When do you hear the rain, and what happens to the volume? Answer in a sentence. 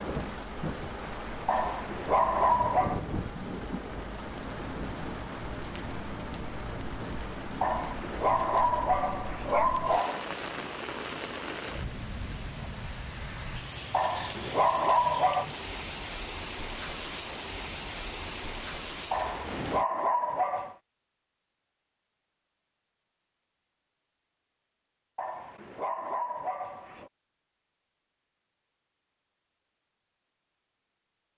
The rain can be heard from 0.0 to 19.9 s, at a steady volume.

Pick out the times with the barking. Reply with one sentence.
The barking can be heard from 1.4 to 3.0 s, from 7.6 to 10.2 s, from 13.9 to 15.4 s, from 19.1 to 20.8 s and from 25.1 to 27.1 s.